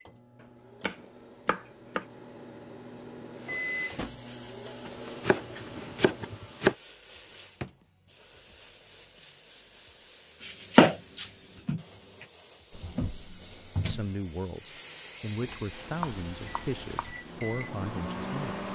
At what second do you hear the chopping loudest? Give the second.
11 s.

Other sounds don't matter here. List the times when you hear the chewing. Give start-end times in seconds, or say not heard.
not heard.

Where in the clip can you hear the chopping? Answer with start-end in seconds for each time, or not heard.
0.8-2.0, 4.8-6.8, 10.4-11.8, 16.0-17.1.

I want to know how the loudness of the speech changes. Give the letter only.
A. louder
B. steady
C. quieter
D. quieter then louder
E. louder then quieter
B.